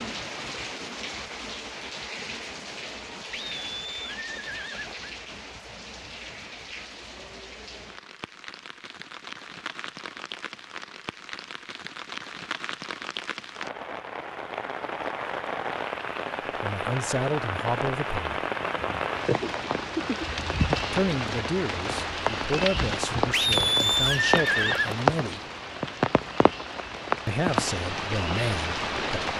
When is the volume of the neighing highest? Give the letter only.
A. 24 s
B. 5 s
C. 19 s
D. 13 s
A.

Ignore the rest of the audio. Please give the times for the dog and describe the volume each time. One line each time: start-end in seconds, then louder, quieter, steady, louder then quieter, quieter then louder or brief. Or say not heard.
not heard.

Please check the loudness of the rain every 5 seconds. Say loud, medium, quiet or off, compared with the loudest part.
medium, quiet, medium, loud, loud, loud.